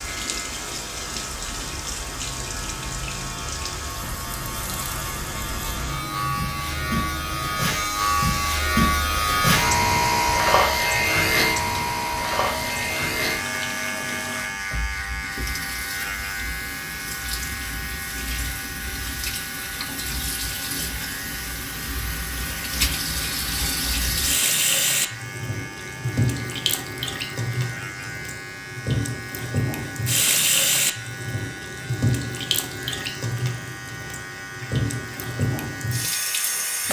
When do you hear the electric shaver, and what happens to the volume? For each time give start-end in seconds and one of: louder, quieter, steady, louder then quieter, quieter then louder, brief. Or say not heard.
0.0-36.8 louder then quieter.